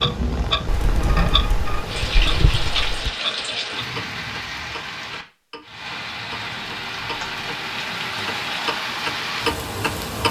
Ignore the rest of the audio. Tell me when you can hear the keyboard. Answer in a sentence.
You can hear the keyboard from 0.7 to 3.1 s and from 6.6 to 8.4 s.